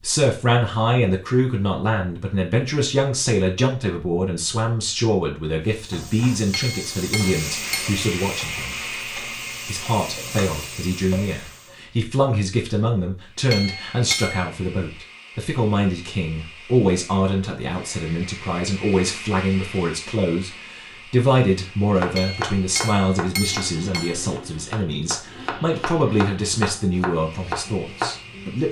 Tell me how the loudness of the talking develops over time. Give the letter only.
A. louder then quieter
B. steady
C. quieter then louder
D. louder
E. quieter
B.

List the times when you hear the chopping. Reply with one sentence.
The chopping can be heard from 21.9 to 28.6 s.